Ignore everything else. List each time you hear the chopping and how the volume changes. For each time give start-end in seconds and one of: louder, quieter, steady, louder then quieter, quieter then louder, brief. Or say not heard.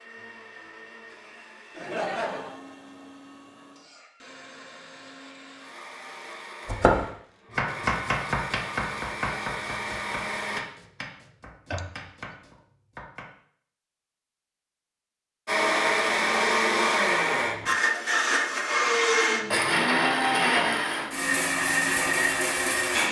6.7-13.3 quieter.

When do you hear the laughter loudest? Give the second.
2 s.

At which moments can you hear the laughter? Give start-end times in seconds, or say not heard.
1.8-2.5, 11.7-12.3.